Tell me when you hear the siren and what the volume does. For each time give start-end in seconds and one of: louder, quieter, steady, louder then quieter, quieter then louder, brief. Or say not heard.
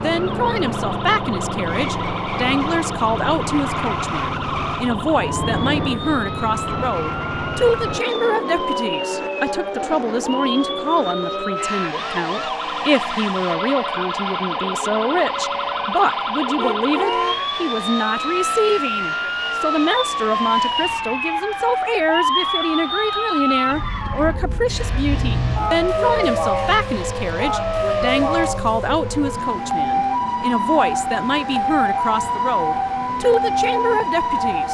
0.1-34.6 louder.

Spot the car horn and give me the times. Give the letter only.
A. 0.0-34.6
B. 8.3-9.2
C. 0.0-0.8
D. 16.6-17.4
D.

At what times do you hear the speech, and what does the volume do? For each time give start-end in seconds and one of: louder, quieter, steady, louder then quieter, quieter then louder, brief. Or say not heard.
0.0-34.6 steady.